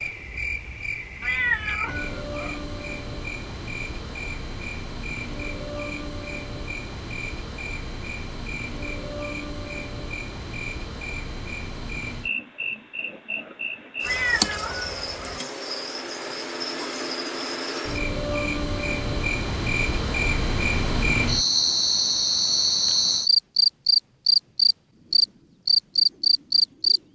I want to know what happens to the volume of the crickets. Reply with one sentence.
The loudness of the crickets goes up.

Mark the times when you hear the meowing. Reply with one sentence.
You can hear the meowing from 1.2 to 2.6 s and from 14.0 to 15.4 s.